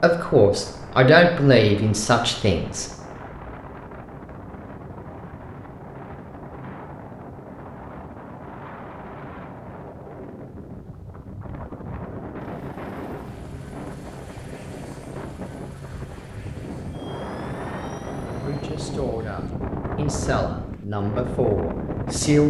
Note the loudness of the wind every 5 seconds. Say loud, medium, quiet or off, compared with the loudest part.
medium, medium, medium, loud, loud.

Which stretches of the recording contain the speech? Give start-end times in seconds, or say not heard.
0.0-2.9, 18.4-22.4.